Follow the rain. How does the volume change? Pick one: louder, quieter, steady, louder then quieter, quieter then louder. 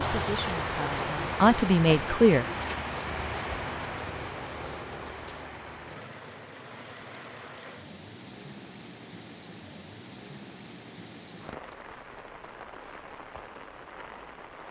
quieter.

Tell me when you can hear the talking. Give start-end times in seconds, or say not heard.
0.0-2.5.